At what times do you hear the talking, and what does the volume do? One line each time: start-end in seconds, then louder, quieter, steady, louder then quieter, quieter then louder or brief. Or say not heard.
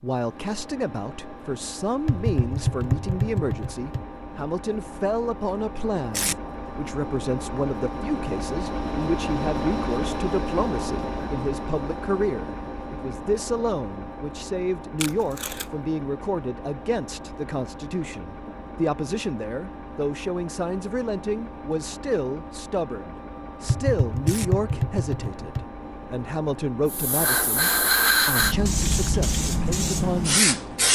0.0-30.9 steady.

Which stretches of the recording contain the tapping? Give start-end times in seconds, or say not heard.
2.0-4.0, 23.6-25.6.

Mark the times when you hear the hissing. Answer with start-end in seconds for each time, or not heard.
26.9-30.9.